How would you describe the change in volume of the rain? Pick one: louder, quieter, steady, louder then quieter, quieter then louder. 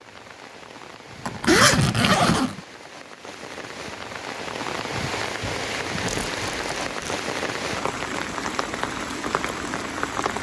louder.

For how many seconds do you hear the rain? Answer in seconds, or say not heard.
10 s.